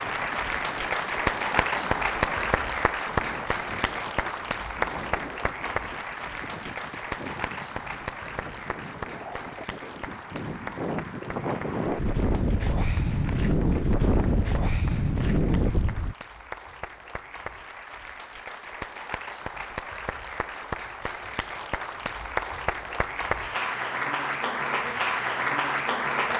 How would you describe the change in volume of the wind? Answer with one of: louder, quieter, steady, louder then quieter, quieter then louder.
louder.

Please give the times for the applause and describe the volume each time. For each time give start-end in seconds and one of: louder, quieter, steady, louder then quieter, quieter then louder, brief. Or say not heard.
0.0-26.3 quieter then louder.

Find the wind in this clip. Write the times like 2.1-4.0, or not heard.
0.0-16.1.